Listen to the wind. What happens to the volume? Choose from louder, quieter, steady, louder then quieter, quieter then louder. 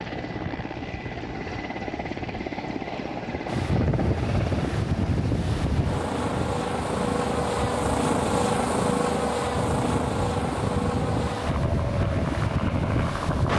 quieter then louder.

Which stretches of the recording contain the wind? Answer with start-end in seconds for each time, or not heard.
3.5-13.5.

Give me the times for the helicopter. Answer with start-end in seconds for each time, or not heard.
0.0-13.5.